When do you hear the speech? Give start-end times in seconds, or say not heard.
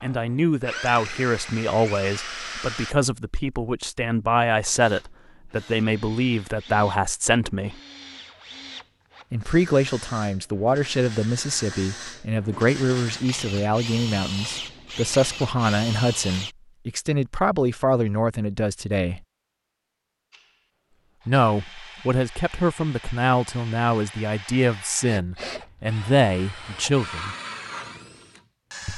0.0-7.8, 9.3-19.2, 21.2-27.4.